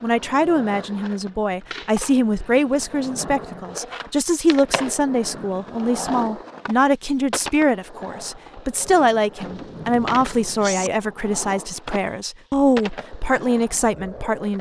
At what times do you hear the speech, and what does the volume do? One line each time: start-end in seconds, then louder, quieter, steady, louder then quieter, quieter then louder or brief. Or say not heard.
0.0-14.5 steady.